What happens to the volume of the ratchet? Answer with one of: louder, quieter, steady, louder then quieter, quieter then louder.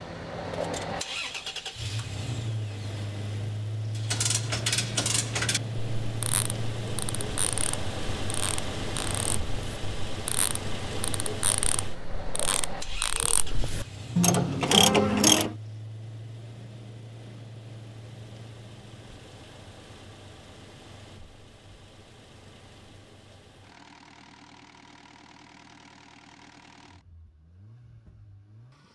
quieter then louder.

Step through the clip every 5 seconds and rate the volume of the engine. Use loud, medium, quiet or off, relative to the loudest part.
loud, loud, loud, medium, quiet, quiet.